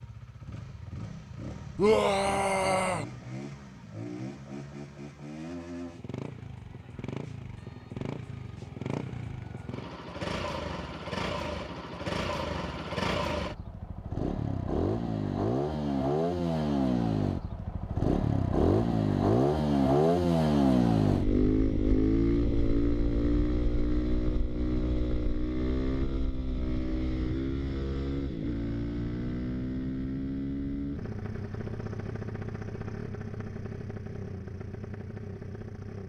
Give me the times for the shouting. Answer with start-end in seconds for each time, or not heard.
1.8-3.0.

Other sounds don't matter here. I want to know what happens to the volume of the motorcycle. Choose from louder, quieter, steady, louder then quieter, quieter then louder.
louder then quieter.